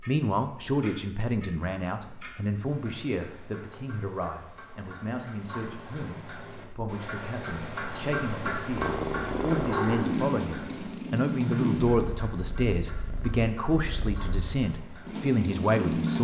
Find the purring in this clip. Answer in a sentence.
You can hear the purring from 8.7 to 16.1 s.